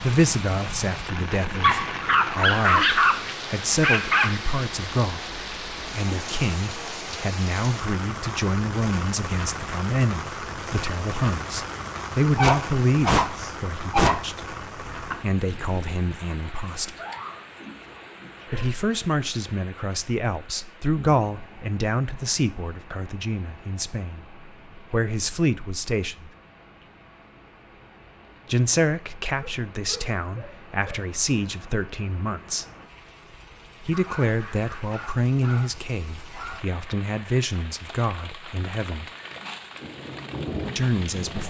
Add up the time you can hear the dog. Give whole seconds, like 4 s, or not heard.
11 s.